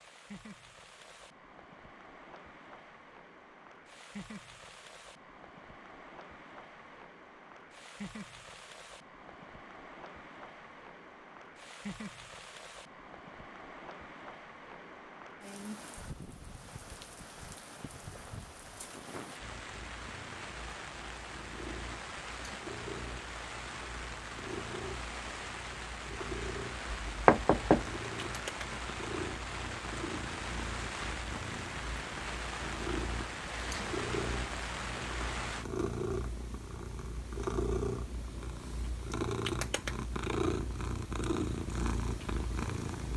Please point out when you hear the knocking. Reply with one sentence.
You can hear the knocking from 26.9 to 27.9 s.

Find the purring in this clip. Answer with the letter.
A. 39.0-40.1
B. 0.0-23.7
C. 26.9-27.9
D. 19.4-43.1
D.